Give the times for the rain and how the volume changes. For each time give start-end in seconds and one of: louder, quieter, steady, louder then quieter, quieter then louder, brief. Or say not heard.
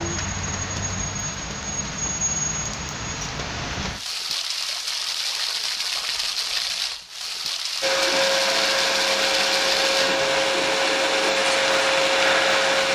0.0-12.8 steady.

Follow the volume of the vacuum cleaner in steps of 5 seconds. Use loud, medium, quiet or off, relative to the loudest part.
off, loud, loud.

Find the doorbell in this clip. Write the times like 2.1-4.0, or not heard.
not heard.